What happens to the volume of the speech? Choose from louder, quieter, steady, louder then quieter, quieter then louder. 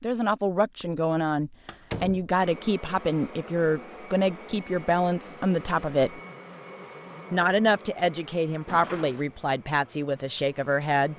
steady.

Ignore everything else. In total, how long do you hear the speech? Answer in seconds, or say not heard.
10 s.